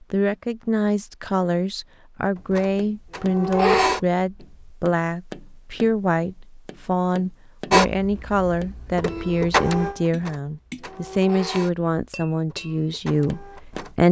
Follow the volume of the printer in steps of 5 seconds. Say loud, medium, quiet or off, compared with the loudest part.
loud, loud, quiet.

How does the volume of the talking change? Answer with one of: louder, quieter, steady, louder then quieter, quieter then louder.
steady.